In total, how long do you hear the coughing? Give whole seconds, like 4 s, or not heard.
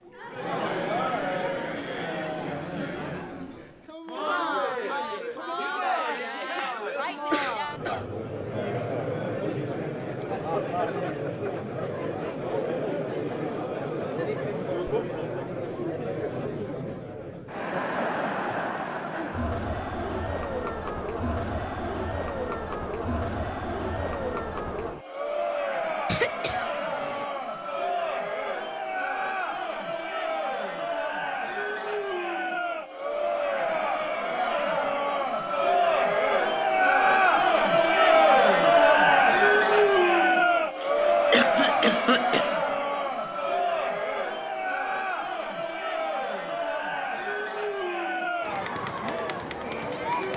4 s.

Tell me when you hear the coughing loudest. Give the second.
42 s.